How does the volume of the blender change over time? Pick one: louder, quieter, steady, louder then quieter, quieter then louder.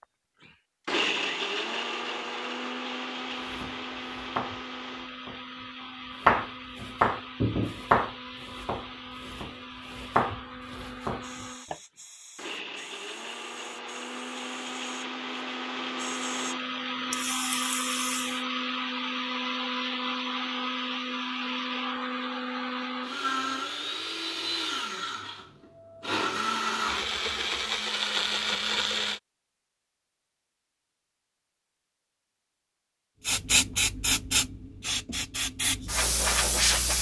quieter then louder.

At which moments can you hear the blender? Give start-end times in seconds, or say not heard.
0.5-29.2.